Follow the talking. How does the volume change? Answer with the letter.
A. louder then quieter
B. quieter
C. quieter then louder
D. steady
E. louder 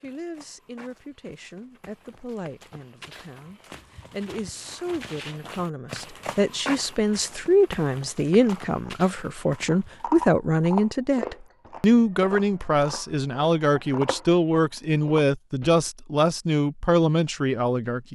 E.